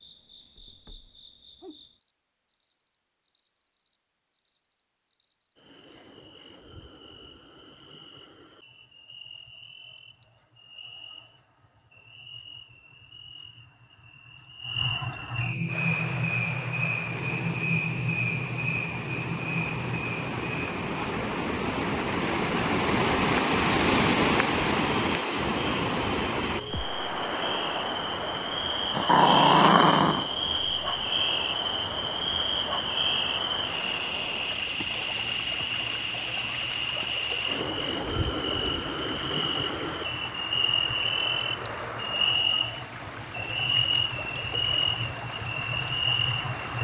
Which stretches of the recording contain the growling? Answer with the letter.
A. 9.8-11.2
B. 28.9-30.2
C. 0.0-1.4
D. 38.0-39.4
B.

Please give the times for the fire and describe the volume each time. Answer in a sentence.
You can't hear the fire here.